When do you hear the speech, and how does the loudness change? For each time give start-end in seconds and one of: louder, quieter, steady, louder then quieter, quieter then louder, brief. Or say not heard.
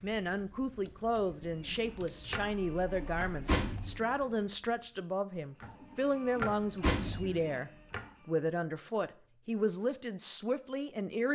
0.0-11.2 steady.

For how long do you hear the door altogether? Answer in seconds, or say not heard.
2 s.